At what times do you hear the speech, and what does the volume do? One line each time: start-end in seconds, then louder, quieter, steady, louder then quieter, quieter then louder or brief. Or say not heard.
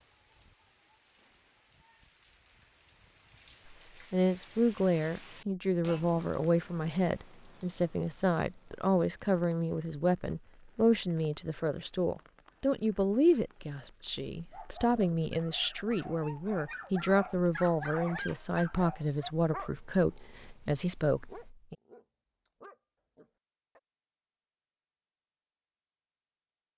3.7-21.8 steady.